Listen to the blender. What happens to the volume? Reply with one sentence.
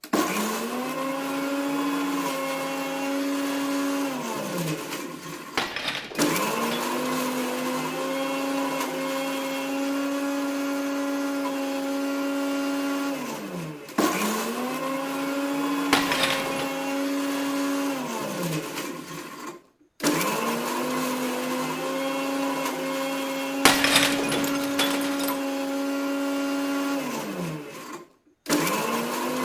The volume of the blender stays about the same.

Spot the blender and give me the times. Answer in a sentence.
The blender can be heard from 0.0 to 29.4 s.